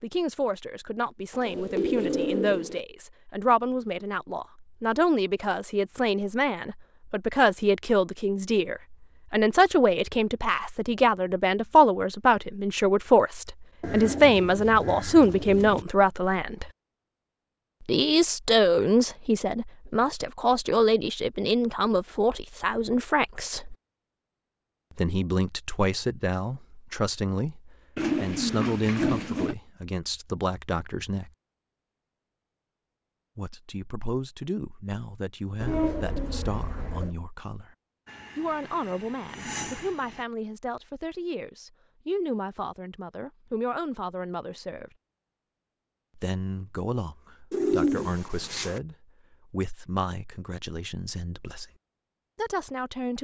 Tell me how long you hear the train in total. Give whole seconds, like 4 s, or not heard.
2 s.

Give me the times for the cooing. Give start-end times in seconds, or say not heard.
1.3-2.8, 13.8-15.8, 27.9-29.6, 35.6-37.1, 47.5-48.8.